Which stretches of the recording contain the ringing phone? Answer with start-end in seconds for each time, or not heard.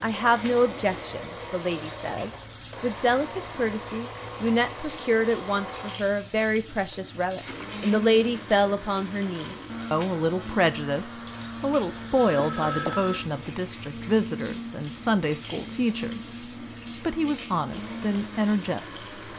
12.0-13.2.